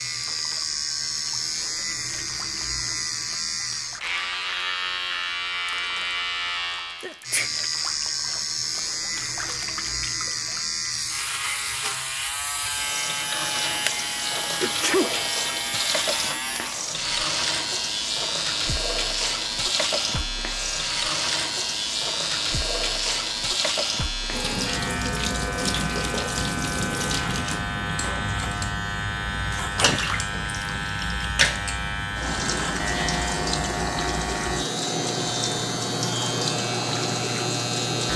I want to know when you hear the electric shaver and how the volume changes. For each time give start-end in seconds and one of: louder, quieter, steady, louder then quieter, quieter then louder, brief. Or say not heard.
0.0-38.1 steady.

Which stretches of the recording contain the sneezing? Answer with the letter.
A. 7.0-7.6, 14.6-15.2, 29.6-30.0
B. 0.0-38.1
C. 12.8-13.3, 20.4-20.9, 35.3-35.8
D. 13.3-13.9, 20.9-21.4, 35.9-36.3
A.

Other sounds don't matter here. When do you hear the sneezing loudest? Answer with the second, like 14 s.
15 s.